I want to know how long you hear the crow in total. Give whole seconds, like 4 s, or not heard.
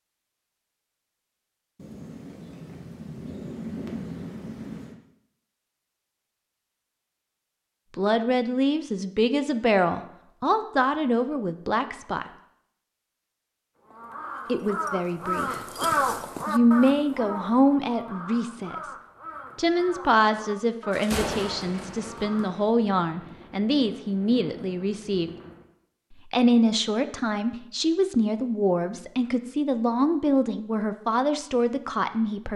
9 s.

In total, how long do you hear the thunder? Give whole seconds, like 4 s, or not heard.
8 s.